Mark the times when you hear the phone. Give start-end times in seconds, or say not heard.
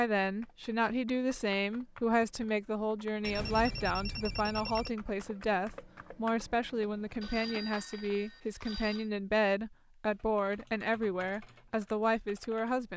3.2-4.9, 7.2-9.1.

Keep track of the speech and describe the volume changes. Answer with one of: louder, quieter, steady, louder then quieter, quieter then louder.
steady.